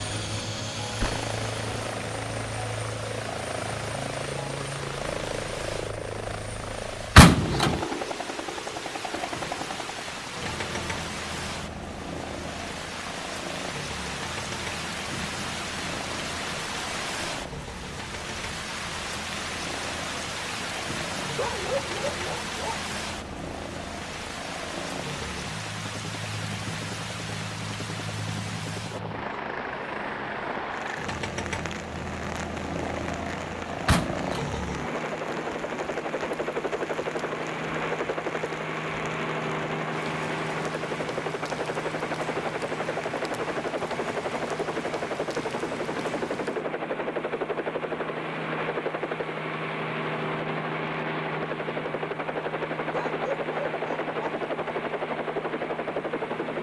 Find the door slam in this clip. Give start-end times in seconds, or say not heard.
7.2-7.8, 33.9-34.5.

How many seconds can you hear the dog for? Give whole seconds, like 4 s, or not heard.
3 s.